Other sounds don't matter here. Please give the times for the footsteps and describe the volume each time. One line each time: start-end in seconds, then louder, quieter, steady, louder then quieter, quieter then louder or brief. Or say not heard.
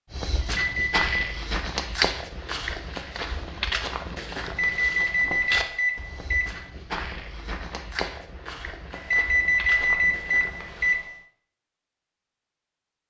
0.1-11.0 quieter.